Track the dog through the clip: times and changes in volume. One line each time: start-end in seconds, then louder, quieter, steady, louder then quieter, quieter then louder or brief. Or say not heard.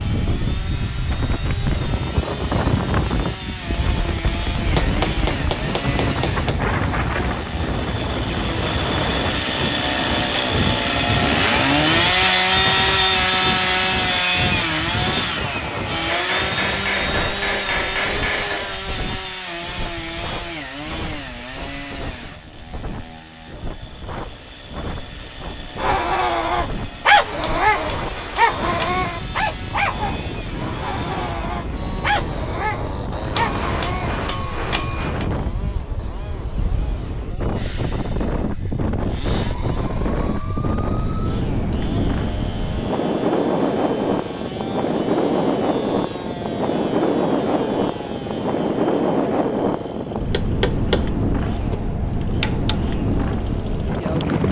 25.8-34.1 quieter.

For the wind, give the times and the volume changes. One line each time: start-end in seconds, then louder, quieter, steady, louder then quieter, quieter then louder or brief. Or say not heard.
0.0-54.4 quieter then louder.